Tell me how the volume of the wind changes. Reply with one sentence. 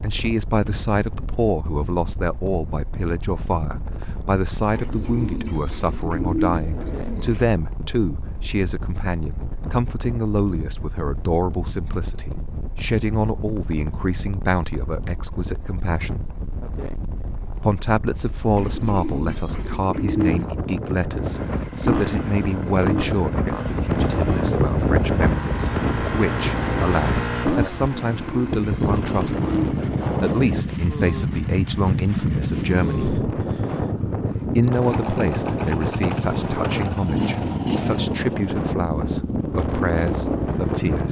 The volume of the wind goes up.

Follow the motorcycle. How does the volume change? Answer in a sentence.
The volume of the motorcycle stays about the same.